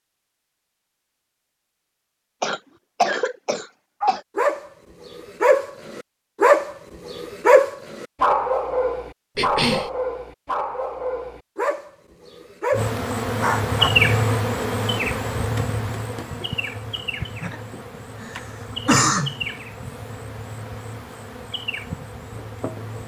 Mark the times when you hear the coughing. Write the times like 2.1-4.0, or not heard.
2.4-4.2, 9.3-9.9, 17.4-19.4.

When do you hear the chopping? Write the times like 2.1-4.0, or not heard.
not heard.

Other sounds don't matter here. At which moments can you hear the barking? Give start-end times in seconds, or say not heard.
4.0-13.9.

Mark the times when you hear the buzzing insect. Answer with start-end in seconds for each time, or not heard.
12.7-23.0.